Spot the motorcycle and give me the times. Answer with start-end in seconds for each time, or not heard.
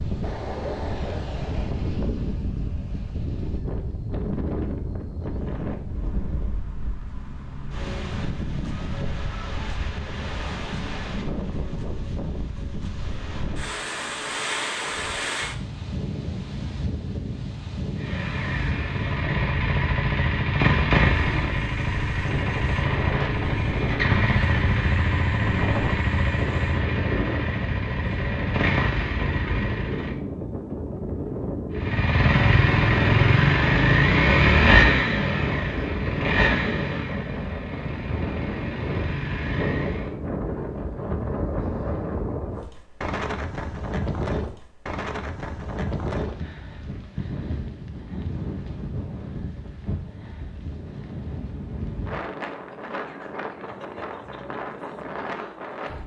17.9-30.1, 31.8-40.1.